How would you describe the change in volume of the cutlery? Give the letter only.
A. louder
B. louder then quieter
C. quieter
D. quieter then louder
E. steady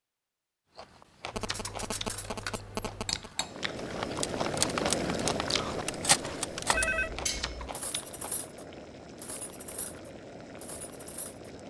B.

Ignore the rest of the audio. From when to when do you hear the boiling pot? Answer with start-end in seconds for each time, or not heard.
3.4-11.6.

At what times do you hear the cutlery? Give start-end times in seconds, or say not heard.
1.4-11.5.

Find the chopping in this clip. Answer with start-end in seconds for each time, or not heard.
not heard.